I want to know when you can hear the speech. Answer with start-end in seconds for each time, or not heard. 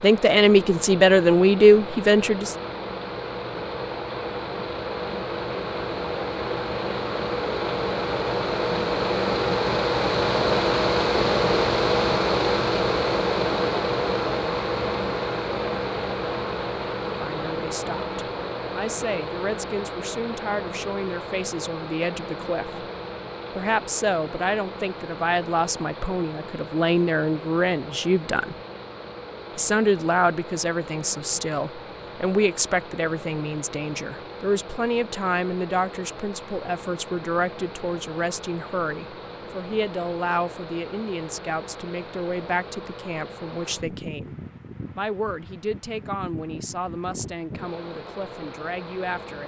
0.0-2.5, 17.1-22.9, 23.6-28.6, 29.6-44.4, 45.0-49.4.